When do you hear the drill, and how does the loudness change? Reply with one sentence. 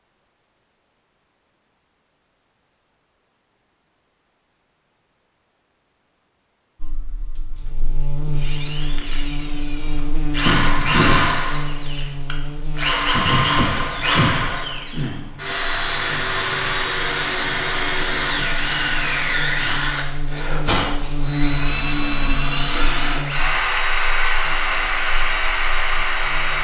The drill can be heard from 8.3 to 26.5 s, at a steady volume.